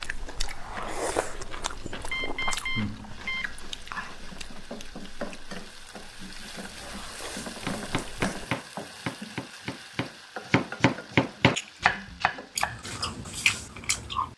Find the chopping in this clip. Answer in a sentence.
The chopping can be heard from 7.7 to 13.1 s.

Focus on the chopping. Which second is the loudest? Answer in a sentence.
The loudest moment of the chopping is at 11 seconds.